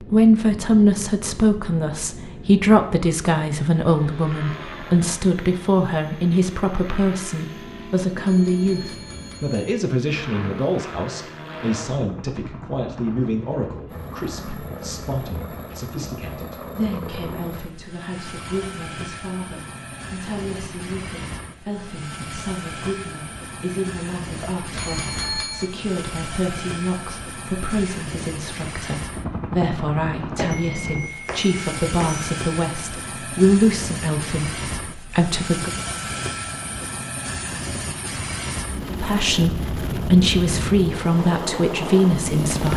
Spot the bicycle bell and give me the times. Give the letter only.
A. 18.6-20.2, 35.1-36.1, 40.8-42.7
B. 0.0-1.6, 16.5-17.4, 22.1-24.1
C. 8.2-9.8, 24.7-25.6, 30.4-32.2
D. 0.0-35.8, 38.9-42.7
C.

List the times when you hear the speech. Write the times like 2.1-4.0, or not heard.
0.0-35.8, 38.9-42.7.